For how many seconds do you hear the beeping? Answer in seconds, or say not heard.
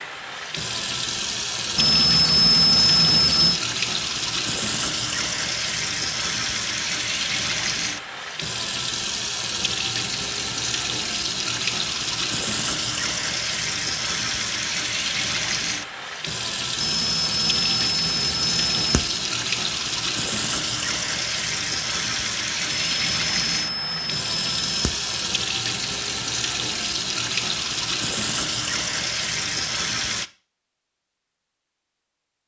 7 s.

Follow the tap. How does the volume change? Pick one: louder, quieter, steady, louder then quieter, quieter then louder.
steady.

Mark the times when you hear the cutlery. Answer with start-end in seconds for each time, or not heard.
not heard.